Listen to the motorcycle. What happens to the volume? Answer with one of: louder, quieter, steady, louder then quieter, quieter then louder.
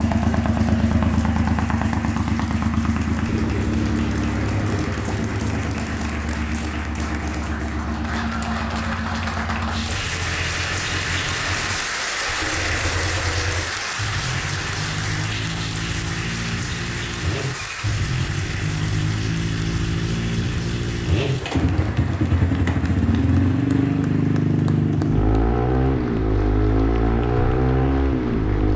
quieter then louder.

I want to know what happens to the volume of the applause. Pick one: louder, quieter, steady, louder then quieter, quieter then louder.
louder then quieter.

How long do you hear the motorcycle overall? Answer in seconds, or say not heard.
29 s.